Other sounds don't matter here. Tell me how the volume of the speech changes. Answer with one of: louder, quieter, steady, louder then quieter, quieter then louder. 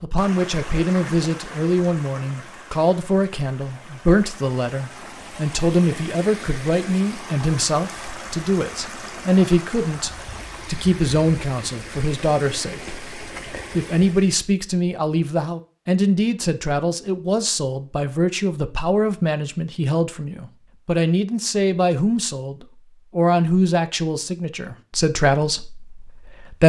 steady.